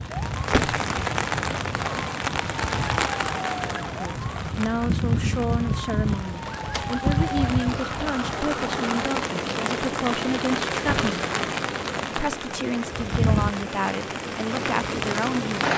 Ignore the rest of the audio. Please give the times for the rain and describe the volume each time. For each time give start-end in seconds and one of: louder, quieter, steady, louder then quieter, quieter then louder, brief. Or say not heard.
0.0-15.7 steady.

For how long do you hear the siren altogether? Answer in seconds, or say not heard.
9 s.